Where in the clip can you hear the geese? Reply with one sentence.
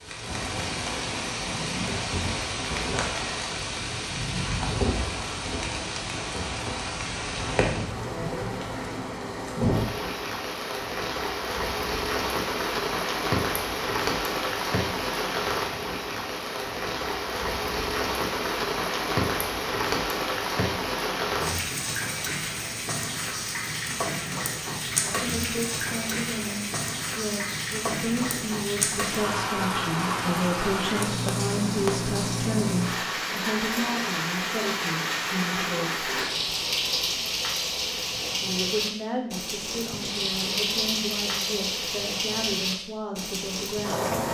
You can't hear the geese here.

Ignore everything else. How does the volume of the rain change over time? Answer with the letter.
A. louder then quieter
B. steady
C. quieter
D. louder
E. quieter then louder
B.